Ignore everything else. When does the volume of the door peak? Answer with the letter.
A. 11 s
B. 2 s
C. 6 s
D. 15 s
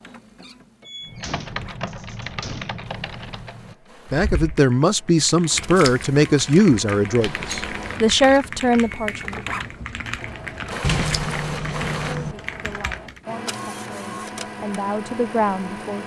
A.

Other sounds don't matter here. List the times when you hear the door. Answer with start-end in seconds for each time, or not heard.
0.8-2.8, 7.2-8.1, 10.8-12.3.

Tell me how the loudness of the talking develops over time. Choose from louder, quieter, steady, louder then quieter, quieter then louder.
quieter then louder.